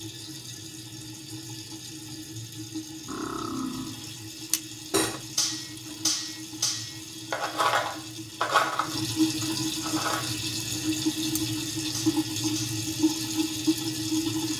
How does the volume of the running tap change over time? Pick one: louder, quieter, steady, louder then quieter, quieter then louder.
louder.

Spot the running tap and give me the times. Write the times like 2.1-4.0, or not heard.
0.0-14.5.